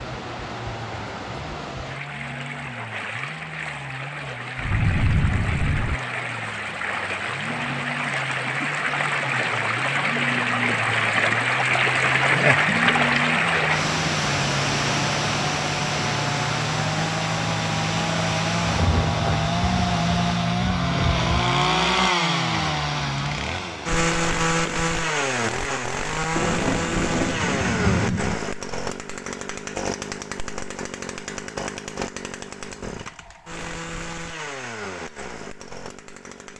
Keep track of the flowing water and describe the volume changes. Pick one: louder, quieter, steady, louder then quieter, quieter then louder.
louder then quieter.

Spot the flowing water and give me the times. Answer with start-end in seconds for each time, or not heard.
0.0-20.5.